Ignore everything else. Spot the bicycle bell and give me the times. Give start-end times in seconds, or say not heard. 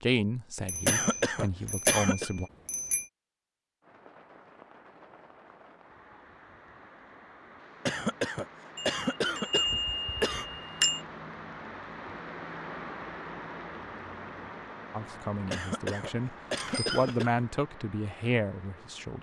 0.7-3.0, 8.8-11.0, 16.6-17.2.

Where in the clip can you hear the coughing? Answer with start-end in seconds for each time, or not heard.
0.8-2.3, 7.8-10.4, 15.5-17.4.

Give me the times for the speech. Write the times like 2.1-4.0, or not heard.
0.0-2.5, 14.9-19.1.